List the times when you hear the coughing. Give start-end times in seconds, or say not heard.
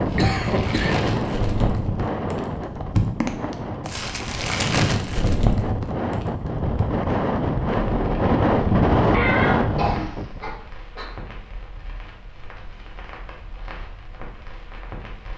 0.1-1.0, 9.1-11.1.